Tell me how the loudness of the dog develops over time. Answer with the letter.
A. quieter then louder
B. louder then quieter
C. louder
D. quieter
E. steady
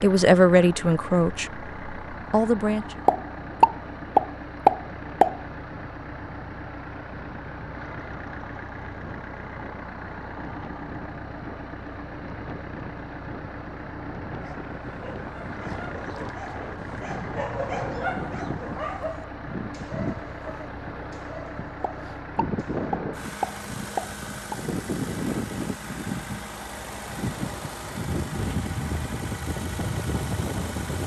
B.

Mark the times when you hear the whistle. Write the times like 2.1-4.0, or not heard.
not heard.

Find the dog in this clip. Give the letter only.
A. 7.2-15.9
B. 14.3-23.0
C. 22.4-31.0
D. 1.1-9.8
B.